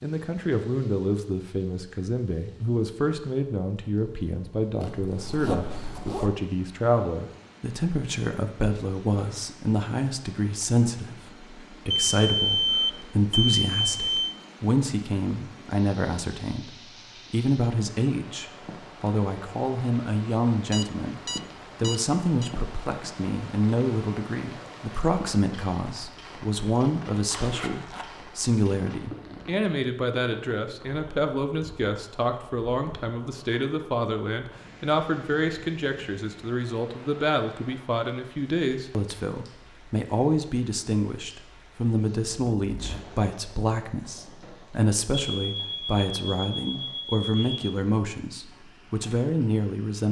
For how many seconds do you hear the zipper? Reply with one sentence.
You can hear the zipper for 3 seconds altogether.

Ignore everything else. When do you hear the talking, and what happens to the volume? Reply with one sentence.
The talking can be heard from 0.0 to 50.0 s, at a steady volume.